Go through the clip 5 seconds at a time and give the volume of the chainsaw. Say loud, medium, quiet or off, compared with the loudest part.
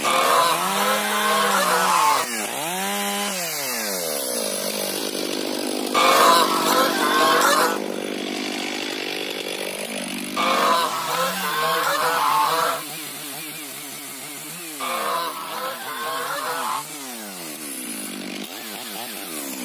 loud, loud, medium, medium.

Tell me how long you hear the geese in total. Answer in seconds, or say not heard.
9 s.